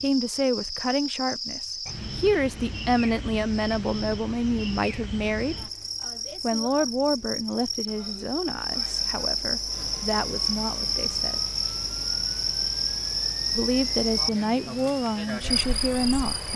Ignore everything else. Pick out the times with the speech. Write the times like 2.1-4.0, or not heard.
0.0-5.7, 6.4-11.4, 13.6-16.5.